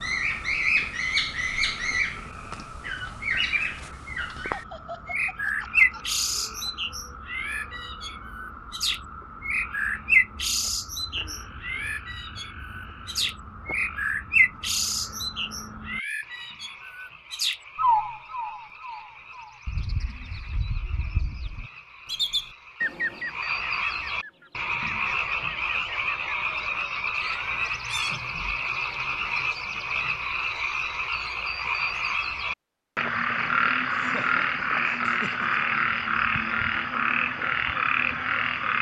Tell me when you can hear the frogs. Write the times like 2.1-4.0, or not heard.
0.0-38.7.